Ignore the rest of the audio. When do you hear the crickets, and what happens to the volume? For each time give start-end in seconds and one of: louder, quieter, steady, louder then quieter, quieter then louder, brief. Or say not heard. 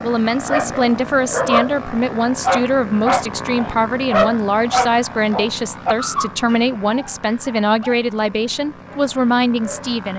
not heard.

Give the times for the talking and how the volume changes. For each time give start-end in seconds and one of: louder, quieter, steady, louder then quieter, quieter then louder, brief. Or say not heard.
0.0-10.1 steady.